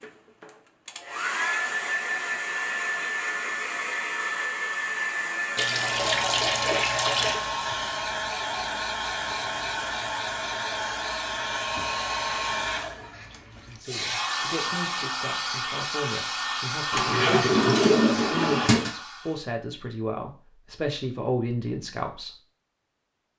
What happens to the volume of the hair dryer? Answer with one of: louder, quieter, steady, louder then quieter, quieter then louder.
steady.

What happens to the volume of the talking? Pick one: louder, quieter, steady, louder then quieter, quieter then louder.
louder.